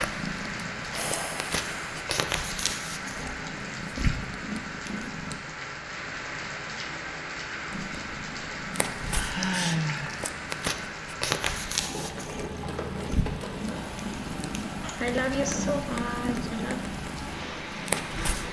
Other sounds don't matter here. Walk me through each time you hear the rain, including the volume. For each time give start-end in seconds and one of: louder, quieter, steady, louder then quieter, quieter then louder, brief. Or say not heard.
0.0-18.4 steady.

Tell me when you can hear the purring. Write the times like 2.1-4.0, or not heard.
0.0-5.3, 7.7-18.4.